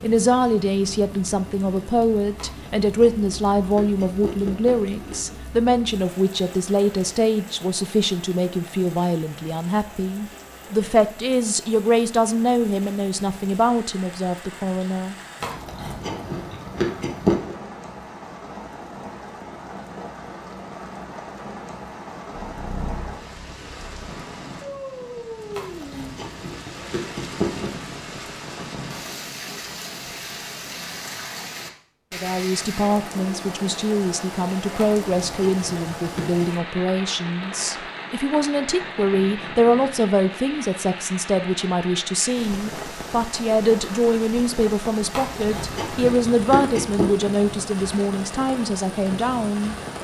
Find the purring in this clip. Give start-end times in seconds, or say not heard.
22.4-24.1.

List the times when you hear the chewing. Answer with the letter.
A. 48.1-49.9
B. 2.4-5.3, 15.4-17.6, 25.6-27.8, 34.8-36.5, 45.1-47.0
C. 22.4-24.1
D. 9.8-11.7
B.